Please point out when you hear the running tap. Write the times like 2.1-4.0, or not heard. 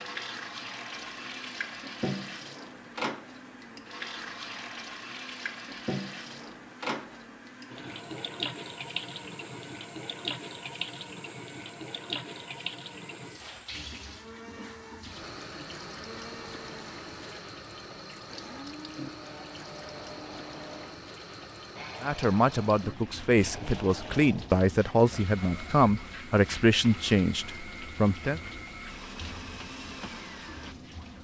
0.0-31.2.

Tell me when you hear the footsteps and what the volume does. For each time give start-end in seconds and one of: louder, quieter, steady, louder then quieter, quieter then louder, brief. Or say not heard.
not heard.